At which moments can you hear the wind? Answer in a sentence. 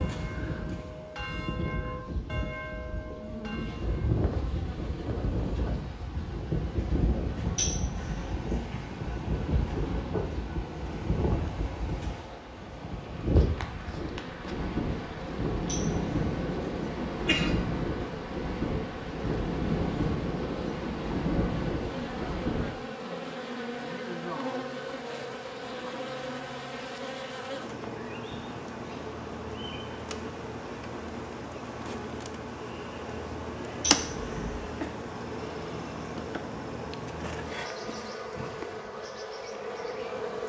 The wind can be heard from 0.0 to 22.7 s.